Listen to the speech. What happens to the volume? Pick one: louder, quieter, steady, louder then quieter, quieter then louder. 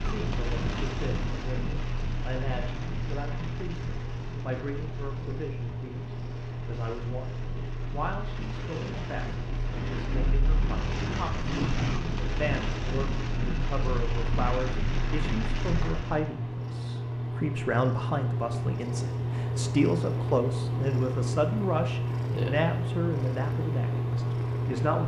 louder.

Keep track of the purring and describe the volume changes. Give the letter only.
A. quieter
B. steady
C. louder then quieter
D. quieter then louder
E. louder
E.